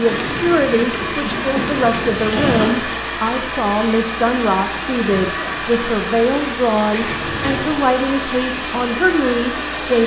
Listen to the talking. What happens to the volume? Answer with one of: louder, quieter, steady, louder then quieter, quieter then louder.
steady.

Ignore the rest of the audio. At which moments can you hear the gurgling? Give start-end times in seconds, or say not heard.
0.0-2.1.